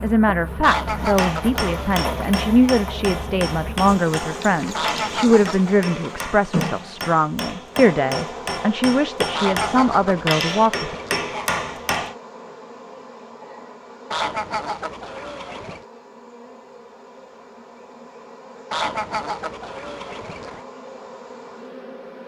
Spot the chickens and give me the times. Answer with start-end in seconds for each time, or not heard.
0.6-2.7, 4.7-6.3, 9.3-11.8, 14.1-15.8, 18.7-20.6.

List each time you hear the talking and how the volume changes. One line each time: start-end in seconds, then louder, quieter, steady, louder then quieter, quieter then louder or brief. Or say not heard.
0.0-10.9 steady.